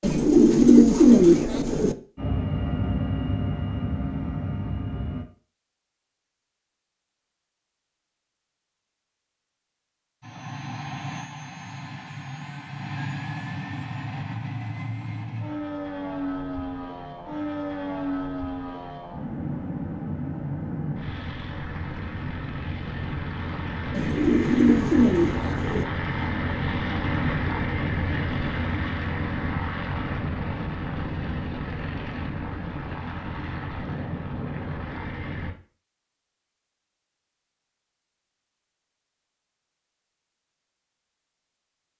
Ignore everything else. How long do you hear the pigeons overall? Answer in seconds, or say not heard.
4 s.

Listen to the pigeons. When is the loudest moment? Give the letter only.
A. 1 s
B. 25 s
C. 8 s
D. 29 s
A.